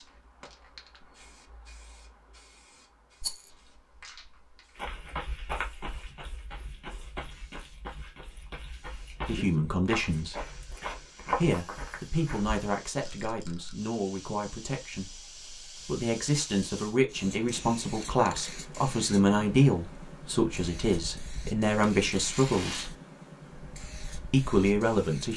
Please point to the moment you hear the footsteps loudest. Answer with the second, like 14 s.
11 s.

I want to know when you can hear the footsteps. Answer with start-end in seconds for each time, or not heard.
4.8-12.6.